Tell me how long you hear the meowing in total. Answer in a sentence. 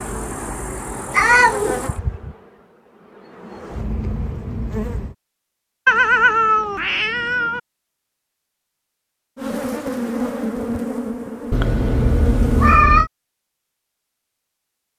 You can hear the meowing for 4 seconds altogether.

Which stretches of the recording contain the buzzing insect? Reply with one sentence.
The buzzing insect can be heard from 0.0 to 5.2 s and from 9.3 to 12.8 s.